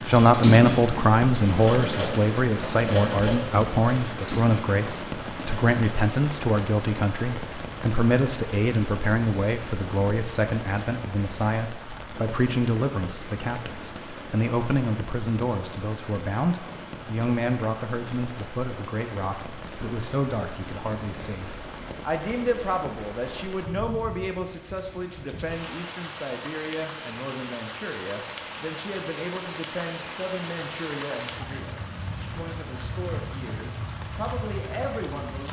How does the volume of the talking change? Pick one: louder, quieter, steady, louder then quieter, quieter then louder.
quieter.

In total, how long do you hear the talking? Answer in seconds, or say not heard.
35 s.